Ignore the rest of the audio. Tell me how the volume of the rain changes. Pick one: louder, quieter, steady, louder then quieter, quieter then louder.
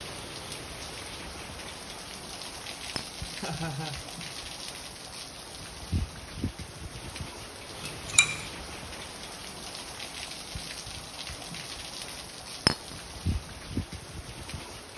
steady.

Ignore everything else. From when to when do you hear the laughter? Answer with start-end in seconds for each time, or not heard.
3.3-4.0.